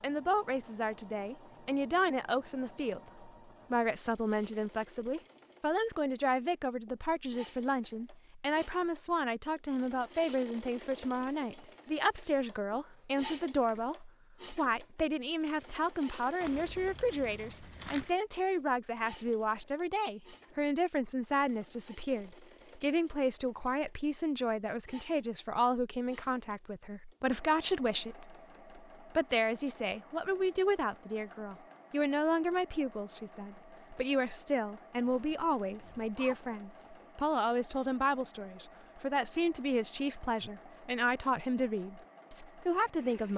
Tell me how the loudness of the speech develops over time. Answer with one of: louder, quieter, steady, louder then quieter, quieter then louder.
steady.